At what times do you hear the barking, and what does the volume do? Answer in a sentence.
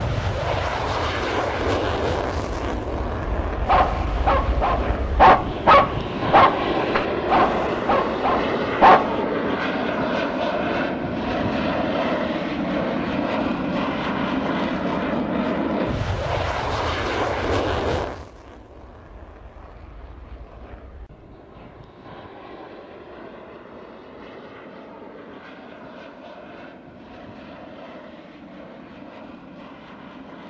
The barking can be heard from 3.6 to 9.2 s, getting louder then quieter.